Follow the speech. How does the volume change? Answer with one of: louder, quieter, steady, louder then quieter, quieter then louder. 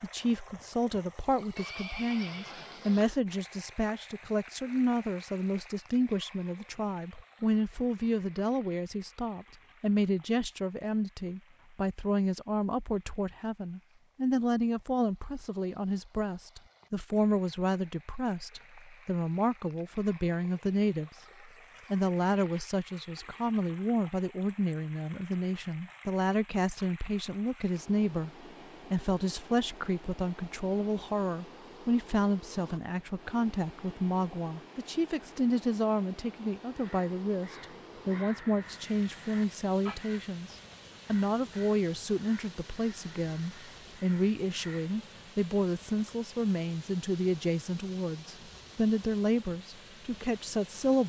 steady.